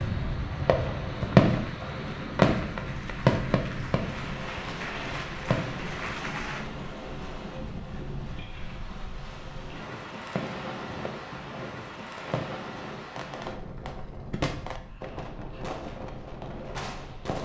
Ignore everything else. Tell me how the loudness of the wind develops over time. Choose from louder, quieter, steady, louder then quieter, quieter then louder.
quieter.